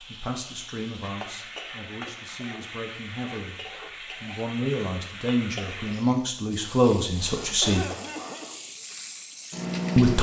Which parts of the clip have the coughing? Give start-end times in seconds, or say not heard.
2.0-2.8, 7.0-8.6.